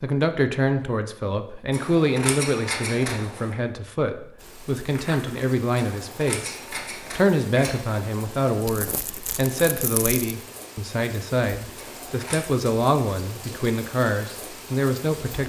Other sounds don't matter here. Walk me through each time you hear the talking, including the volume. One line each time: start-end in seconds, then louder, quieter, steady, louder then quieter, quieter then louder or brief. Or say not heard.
0.0-15.4 steady.